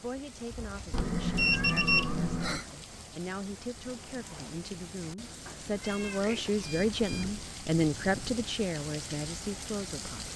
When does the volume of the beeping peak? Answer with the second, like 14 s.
2 s.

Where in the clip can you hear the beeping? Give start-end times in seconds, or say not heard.
0.5-2.1, 6.5-8.5.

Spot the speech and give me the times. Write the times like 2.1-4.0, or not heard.
0.0-10.3.